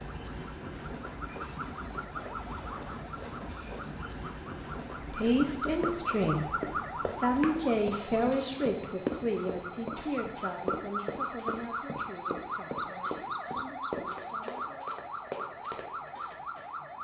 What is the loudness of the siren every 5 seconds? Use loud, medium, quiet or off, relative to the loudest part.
medium, loud, loud, loud.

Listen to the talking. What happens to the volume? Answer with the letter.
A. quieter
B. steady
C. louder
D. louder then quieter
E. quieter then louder
A.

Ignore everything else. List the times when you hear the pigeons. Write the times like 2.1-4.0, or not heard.
not heard.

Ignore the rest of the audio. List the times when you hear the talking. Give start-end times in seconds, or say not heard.
4.7-14.9.